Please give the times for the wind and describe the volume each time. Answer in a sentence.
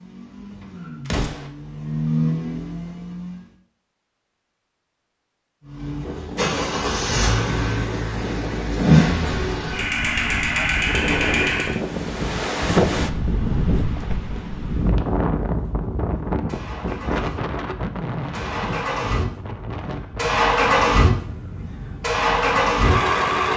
The wind can be heard from 6.0 to 23.5 s, getting louder then quieter.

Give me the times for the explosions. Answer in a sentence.
The explosions can be heard from 1.1 to 1.5 s.